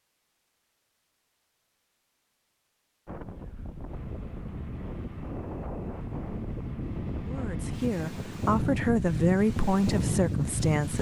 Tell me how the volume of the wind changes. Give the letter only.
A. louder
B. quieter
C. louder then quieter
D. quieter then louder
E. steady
A.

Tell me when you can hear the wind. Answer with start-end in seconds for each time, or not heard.
3.0-10.9.